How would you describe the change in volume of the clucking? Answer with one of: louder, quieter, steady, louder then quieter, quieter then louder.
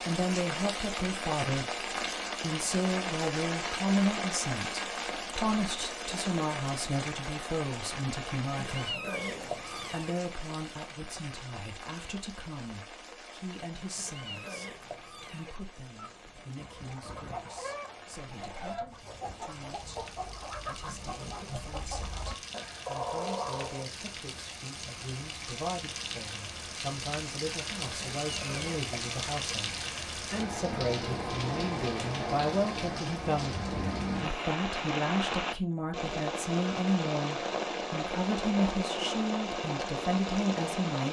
louder.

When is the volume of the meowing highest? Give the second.
9 s.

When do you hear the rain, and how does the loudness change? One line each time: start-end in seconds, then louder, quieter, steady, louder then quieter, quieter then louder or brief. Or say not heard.
0.0-41.0 quieter then louder.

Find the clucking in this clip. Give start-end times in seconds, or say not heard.
15.9-23.9.